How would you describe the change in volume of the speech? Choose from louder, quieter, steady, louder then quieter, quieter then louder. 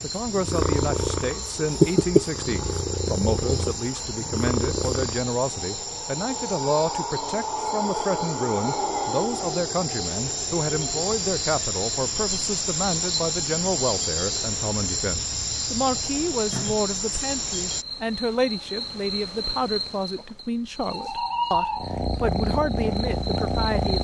steady.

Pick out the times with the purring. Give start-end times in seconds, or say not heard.
0.1-5.3, 21.8-23.9.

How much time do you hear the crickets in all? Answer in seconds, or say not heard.
24 s.